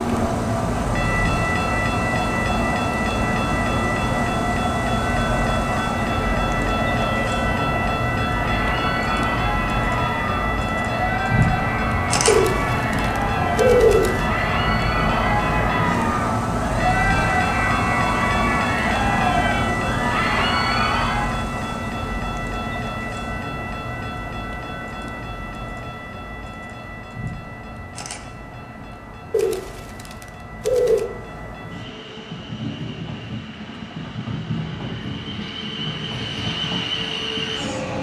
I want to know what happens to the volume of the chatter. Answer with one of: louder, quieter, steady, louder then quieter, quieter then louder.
louder.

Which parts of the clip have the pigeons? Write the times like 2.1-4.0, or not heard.
12.2-14.2, 29.3-31.1.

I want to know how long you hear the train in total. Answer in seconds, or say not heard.
38 s.